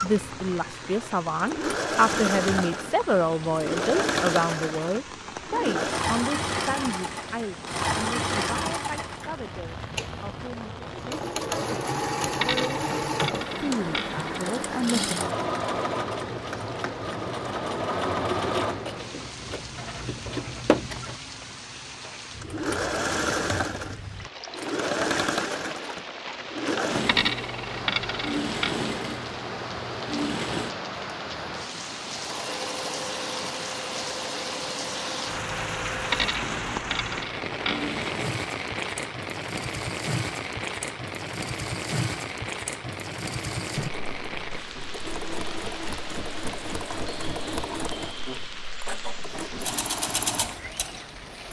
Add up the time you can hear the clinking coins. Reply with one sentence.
The clinking coins can be heard for 6 seconds in total.